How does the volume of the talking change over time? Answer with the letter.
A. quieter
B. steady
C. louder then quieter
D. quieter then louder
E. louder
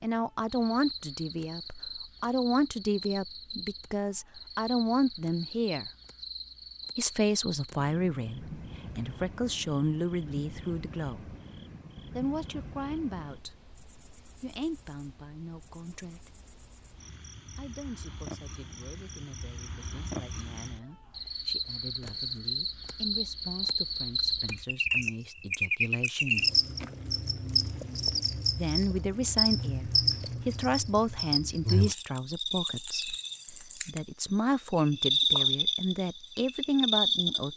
D.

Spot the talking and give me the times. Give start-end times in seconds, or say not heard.
0.0-5.9, 7.0-11.3, 12.2-16.4, 17.6-26.5, 28.6-37.5.